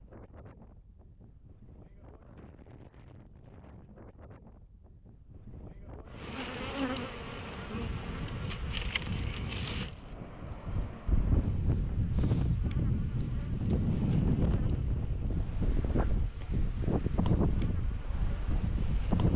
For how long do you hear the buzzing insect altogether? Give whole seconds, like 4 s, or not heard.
13 s.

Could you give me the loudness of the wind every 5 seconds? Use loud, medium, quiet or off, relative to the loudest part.
quiet, quiet, loud, loud.